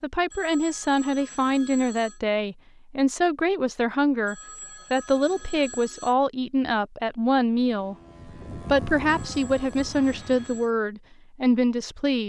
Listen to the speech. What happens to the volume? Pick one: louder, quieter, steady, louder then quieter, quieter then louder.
steady.